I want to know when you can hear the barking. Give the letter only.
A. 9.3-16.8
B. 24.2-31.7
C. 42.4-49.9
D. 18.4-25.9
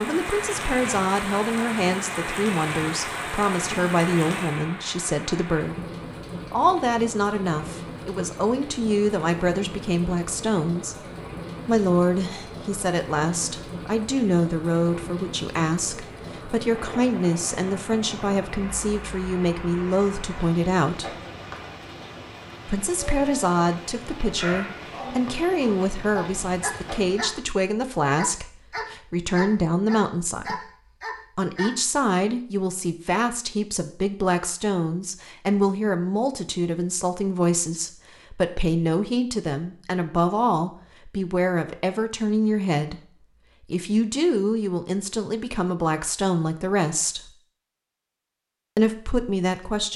B.